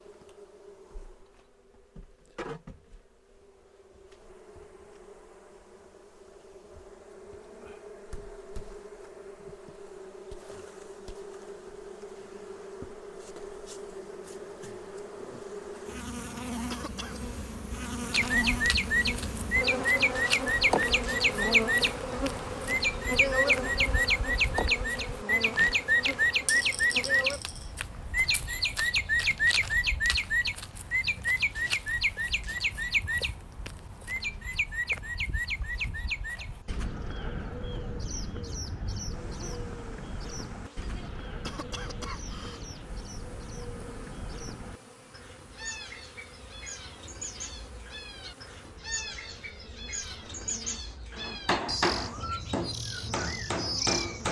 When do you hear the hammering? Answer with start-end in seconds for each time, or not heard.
51.1-54.2.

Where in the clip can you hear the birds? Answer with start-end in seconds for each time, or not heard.
18.1-54.2.